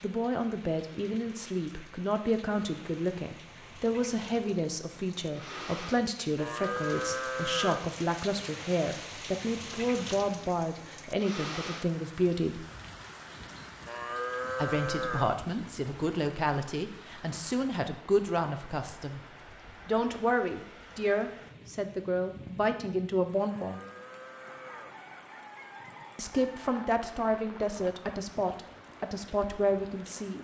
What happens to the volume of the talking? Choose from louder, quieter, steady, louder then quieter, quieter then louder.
steady.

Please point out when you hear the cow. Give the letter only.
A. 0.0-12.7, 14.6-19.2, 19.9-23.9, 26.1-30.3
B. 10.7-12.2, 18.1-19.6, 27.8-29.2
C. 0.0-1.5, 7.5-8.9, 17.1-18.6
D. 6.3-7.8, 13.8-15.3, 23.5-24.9
D.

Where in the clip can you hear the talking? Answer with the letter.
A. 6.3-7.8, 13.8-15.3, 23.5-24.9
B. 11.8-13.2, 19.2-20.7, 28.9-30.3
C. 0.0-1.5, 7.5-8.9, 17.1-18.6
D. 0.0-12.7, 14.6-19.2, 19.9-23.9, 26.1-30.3
D.